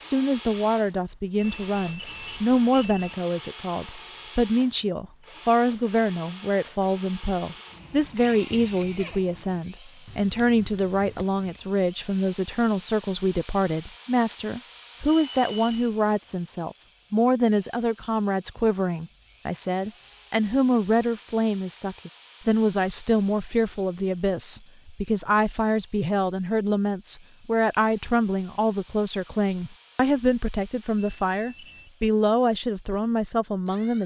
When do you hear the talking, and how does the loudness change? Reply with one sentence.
The talking can be heard from 0.0 to 34.0 s, at a steady volume.